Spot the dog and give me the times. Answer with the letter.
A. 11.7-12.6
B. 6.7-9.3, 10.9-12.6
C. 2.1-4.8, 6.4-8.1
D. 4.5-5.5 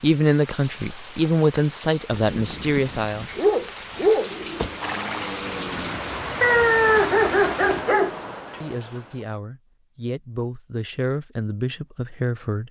C.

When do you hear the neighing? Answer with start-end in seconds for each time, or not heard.
4.5-5.5.